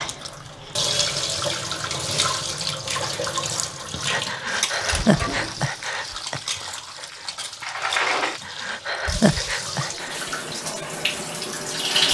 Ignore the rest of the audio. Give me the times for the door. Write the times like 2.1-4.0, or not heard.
7.6-8.4.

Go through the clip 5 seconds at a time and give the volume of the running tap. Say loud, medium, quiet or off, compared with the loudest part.
loud, medium, loud.